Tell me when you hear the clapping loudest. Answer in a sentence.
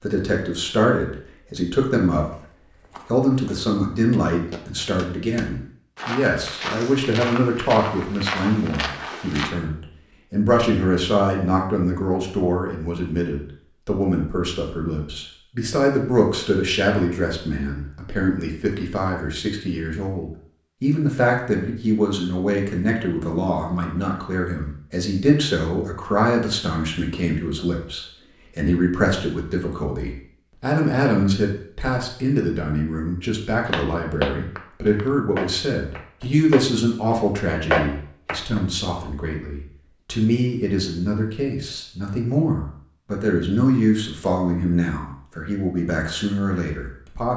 The loudest moment of the clapping is at 38 seconds.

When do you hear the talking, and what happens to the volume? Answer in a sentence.
You can hear the talking briefly from 0.0 to 2.5 s; and from 3.0 to 47.3 s, at a steady volume.